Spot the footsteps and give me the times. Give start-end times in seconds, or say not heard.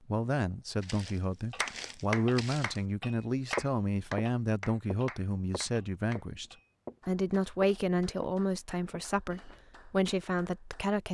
0.8-2.8, 3.5-7.0, 7.6-9.6.